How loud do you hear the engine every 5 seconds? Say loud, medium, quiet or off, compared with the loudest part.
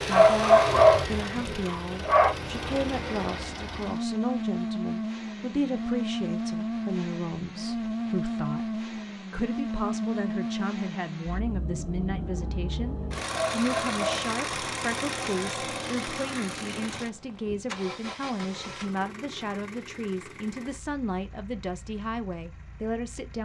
loud, loud, loud, medium, quiet.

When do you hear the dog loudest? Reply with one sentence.
The loudest moment of the dog is at 1 second.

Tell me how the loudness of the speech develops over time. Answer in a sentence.
The volume of the speech stays about the same.